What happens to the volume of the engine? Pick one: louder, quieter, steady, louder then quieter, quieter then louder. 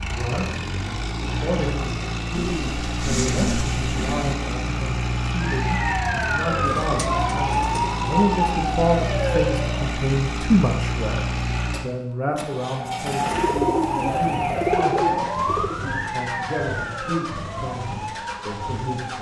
quieter.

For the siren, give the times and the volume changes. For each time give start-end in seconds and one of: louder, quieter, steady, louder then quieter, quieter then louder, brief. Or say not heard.
5.4-9.9 steady
12.7-19.1 quieter.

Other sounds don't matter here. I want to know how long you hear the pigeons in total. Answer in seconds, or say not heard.
6 s.